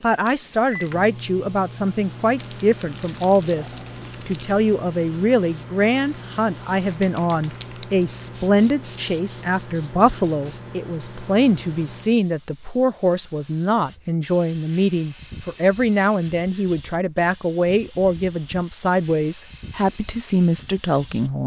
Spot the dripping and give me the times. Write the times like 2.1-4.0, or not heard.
not heard.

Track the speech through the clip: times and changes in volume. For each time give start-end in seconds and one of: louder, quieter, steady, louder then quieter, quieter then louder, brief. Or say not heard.
0.0-21.4 steady.